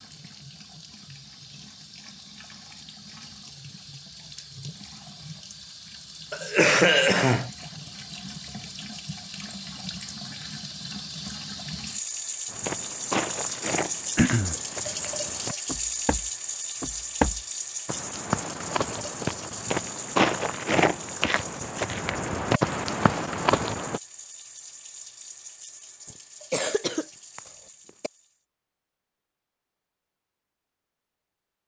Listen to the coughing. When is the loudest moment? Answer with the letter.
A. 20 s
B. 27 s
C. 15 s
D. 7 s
D.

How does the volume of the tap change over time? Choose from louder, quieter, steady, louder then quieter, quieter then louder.
louder then quieter.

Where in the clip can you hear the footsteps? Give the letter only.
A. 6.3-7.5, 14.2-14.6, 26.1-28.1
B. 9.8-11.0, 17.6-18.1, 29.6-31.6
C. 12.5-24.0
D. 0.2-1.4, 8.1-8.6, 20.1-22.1
C.